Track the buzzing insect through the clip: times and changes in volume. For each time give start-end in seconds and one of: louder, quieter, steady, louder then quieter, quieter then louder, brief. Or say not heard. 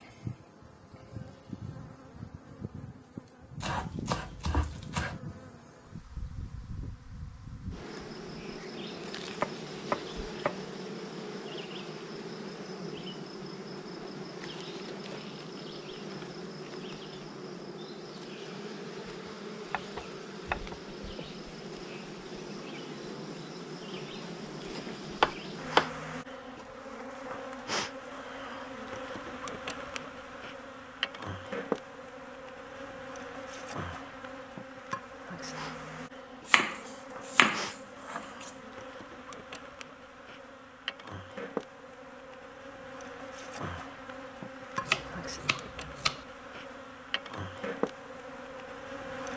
0.0-49.3 steady.